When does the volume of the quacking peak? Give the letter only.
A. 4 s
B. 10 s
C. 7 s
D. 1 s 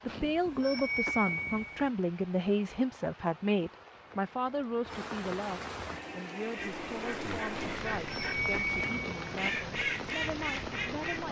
B.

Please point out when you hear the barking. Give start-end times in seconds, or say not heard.
not heard.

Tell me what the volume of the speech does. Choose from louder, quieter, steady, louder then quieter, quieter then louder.
quieter.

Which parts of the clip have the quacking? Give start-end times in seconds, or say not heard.
6.5-11.2.